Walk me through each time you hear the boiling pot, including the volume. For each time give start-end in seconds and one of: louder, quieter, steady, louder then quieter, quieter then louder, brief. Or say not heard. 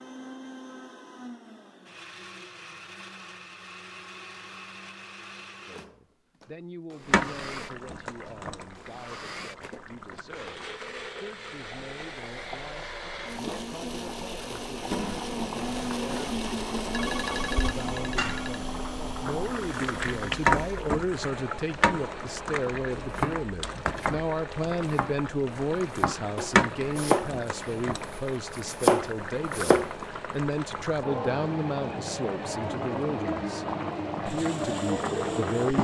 7.0-35.7 louder.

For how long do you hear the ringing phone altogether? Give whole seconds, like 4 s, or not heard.
2 s.